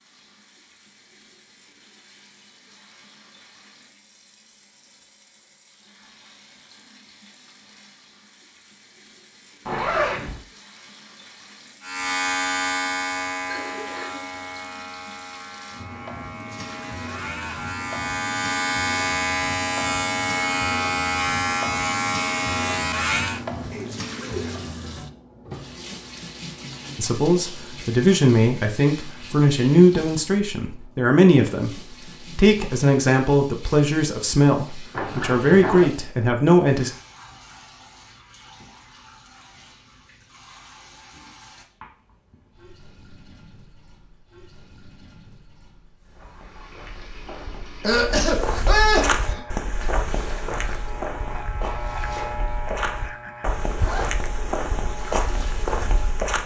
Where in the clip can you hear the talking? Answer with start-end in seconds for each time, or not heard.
26.9-36.9.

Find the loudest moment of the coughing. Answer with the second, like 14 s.
49 s.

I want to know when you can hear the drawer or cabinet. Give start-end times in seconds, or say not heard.
not heard.